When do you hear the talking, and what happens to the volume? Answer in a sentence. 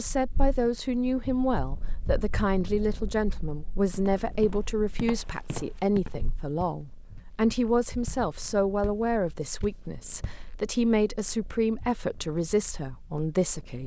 You can hear the talking from 0.0 to 13.8 s, at a steady volume.